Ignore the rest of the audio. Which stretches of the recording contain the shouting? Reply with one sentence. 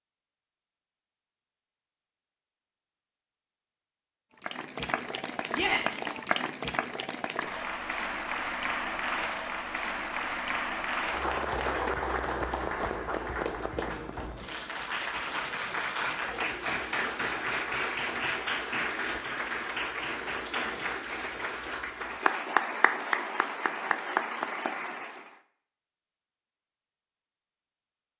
You can hear the shouting from 5.5 to 6.0 s.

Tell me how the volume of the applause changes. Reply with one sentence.
The loudness of the applause stays about the same.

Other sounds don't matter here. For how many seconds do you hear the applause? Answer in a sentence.
The applause can be heard for 21 seconds in total.